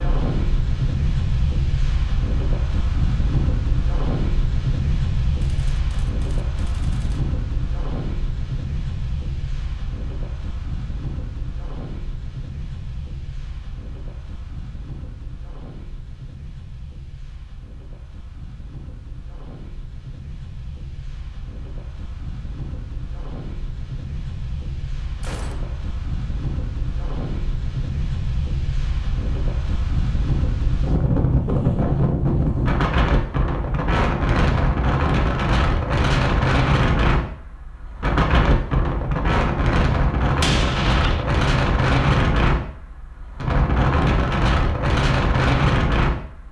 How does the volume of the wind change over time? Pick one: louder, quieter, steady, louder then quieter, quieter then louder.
quieter then louder.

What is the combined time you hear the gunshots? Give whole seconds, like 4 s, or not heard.
3 s.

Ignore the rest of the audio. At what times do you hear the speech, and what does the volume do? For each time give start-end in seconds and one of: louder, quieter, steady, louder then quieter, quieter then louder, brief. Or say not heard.
not heard.